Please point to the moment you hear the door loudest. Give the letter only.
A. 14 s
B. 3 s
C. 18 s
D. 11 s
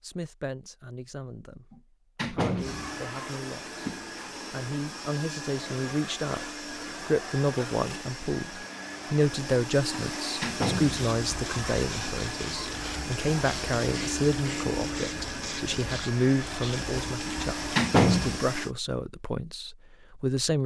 C.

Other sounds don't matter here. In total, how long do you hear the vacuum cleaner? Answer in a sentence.
The vacuum cleaner can be heard for 16 seconds in total.